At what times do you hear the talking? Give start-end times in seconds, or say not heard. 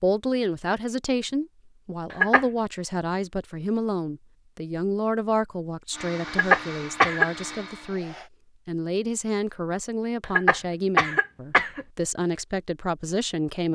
0.0-13.7.